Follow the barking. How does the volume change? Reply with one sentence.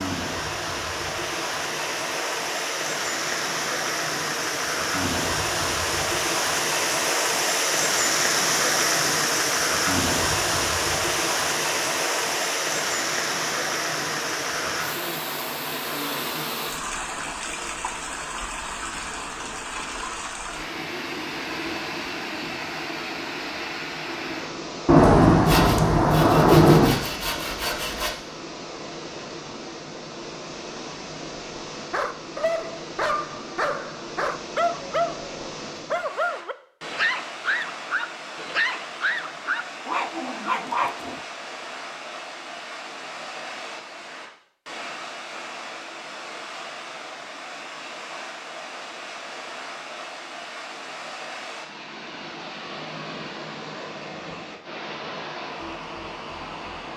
The volume of the barking stays about the same.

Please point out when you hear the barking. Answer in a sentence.
The barking can be heard from 31.9 to 41.2 s.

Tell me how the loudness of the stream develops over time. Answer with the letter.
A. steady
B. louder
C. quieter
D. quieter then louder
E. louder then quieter
C.